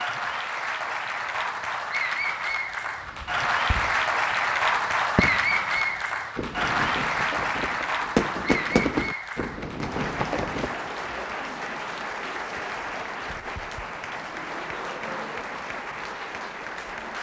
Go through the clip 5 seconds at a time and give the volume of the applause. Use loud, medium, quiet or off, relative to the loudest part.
loud, loud, medium, medium.